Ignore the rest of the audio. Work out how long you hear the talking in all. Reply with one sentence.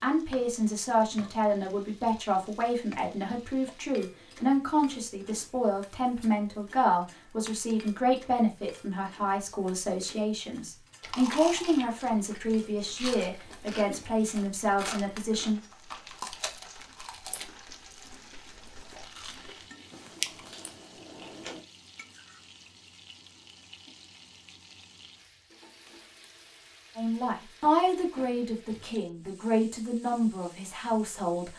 The talking can be heard for 20 seconds in total.